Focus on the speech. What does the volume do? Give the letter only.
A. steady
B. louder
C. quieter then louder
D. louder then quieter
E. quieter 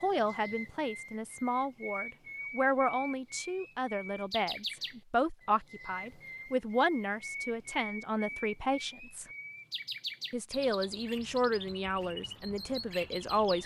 A.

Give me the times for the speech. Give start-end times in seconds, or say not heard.
0.0-9.2, 10.3-13.6.